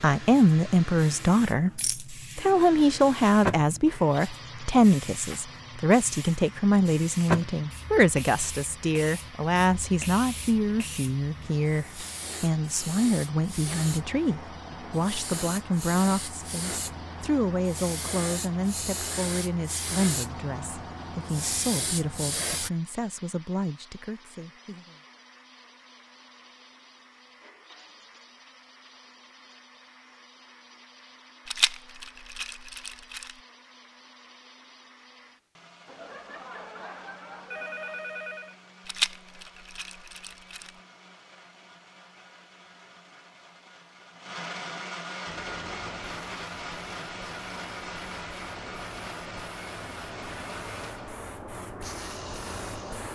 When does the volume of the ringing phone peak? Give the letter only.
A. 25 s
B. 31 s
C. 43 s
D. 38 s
D.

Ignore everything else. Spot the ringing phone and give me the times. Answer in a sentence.
The ringing phone can be heard from 35.9 to 38.5 s.